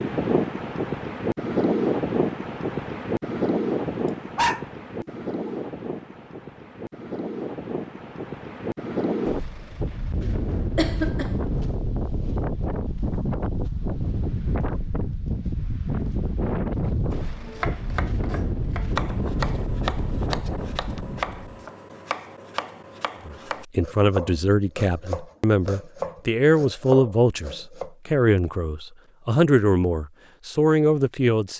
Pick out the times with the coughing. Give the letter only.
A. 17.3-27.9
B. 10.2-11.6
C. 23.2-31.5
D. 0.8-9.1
B.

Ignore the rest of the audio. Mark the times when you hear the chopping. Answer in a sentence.
The chopping can be heard from 17.3 to 27.9 s.